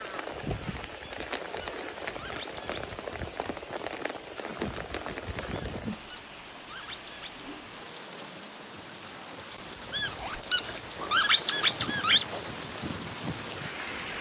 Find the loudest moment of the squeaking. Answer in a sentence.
The loudest moment of the squeaking is at 11 seconds.